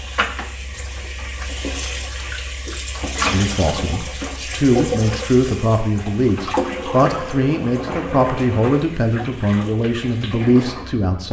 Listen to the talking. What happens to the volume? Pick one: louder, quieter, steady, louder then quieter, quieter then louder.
steady.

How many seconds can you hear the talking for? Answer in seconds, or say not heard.
8 s.